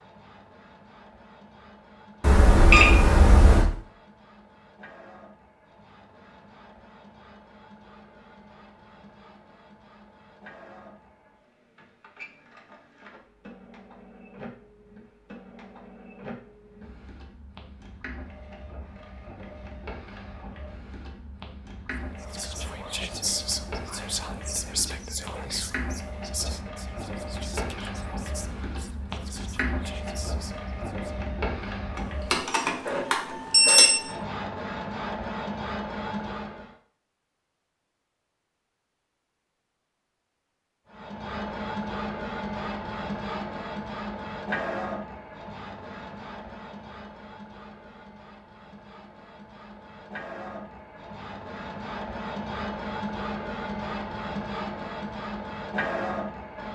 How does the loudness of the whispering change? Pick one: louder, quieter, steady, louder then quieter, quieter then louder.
quieter.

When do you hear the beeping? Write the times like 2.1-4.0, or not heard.
2.2-3.6, 31.9-33.9.